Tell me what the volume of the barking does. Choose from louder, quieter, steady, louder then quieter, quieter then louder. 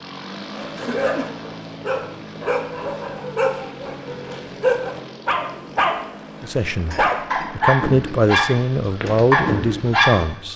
louder.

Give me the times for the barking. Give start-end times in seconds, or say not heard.
0.5-6.0, 6.9-10.2.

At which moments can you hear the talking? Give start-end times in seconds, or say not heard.
6.4-10.5.